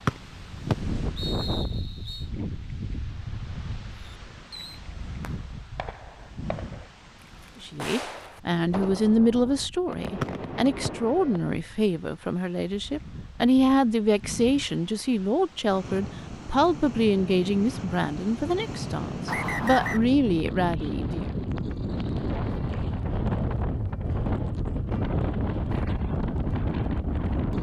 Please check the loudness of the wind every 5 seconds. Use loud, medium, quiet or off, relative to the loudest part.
medium, quiet, quiet, medium, loud, loud.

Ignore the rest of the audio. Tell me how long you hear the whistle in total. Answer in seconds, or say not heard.
4 s.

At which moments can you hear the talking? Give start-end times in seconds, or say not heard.
7.6-21.3.